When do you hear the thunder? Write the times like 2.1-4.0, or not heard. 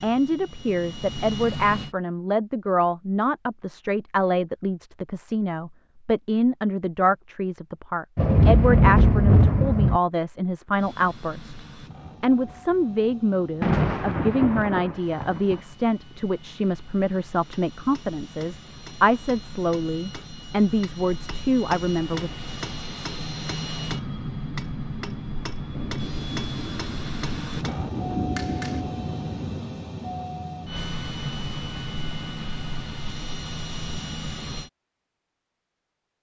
8.2-10.0, 13.6-15.6, 25.8-29.6.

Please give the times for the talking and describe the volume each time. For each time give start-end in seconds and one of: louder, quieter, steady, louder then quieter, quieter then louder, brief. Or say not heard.
0.0-22.3 steady.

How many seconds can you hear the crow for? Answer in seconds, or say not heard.
not heard.